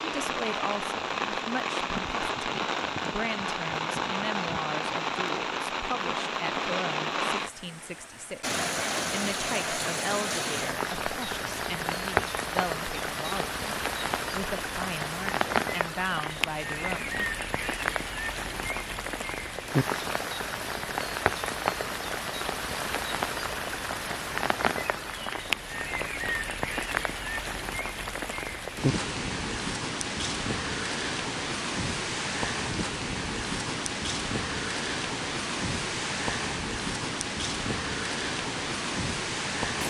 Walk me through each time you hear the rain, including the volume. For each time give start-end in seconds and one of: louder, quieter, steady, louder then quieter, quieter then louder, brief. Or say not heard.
0.0-39.8 steady.